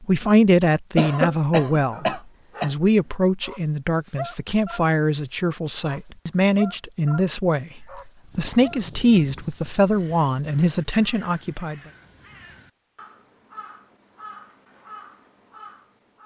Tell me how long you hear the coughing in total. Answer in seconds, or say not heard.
2 s.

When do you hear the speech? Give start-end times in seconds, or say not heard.
0.0-11.8.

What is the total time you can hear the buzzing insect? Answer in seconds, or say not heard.
not heard.